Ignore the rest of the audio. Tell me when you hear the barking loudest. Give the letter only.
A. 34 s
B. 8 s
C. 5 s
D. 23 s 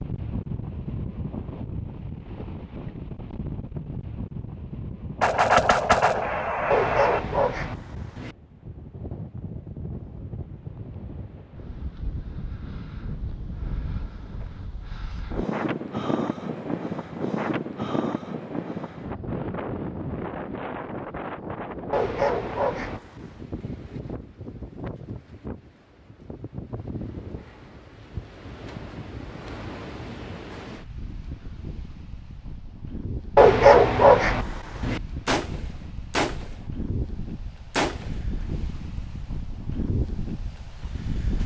A.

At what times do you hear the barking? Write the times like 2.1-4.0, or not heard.
6.7-8.3, 21.9-23.4, 33.4-35.0.